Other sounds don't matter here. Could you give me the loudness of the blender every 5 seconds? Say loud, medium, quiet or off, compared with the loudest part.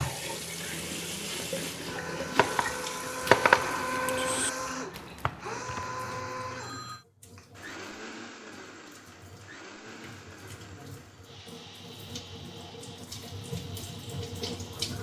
loud, medium, quiet.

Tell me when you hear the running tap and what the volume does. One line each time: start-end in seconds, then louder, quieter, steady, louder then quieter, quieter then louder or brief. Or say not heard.
0.0-14.9 quieter then louder.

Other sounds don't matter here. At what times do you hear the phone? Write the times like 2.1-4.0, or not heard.
5.4-7.0.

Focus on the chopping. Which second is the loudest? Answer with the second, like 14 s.
3 s.